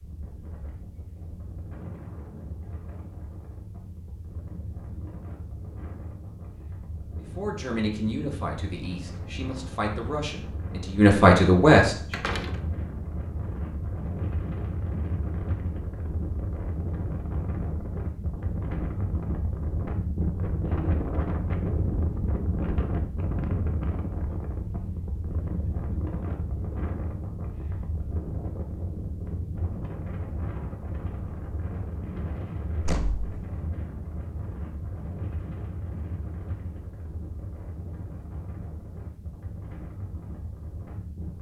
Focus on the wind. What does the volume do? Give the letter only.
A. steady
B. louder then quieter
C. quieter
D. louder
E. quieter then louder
B.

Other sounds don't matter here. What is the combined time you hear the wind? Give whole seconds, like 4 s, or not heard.
41 s.